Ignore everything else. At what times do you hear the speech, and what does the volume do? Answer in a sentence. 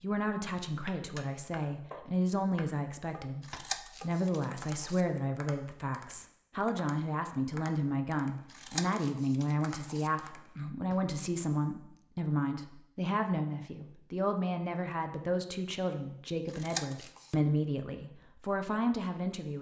The speech can be heard from 0.0 to 19.5 s, at a steady volume.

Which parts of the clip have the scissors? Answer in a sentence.
The scissors can be heard from 3.4 to 5.0 s, from 8.5 to 10.1 s and from 16.4 to 17.4 s.